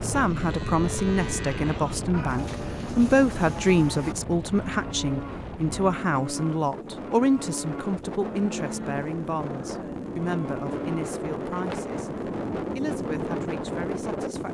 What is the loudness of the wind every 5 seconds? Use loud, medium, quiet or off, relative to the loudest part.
loud, medium, loud.